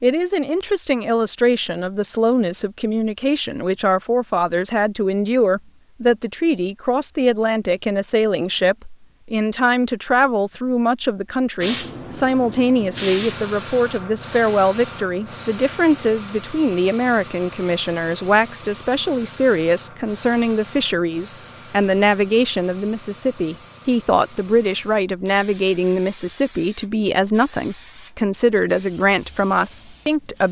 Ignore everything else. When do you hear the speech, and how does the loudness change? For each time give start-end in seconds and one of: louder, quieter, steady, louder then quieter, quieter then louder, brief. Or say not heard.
0.0-30.4 steady.